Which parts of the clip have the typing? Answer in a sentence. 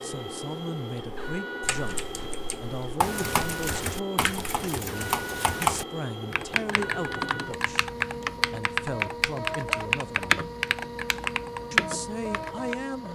You can hear the typing from 1.0 to 12.8 s.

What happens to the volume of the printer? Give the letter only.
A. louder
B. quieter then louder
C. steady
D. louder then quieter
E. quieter
C.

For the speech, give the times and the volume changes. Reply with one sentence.
You can hear the speech from 0.0 to 7.9 s, at a steady volume; briefly from 8.5 to 10.4 s; and briefly from 11.7 to 13.0 s.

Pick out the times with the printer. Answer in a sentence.
The printer can be heard from 0.0 to 13.0 s.